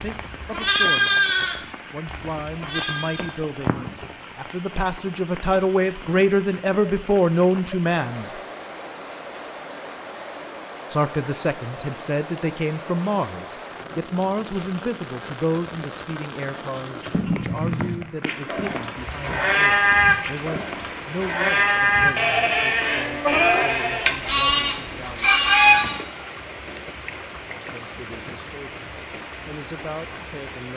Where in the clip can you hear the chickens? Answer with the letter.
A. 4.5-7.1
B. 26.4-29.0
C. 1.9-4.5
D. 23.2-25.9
D.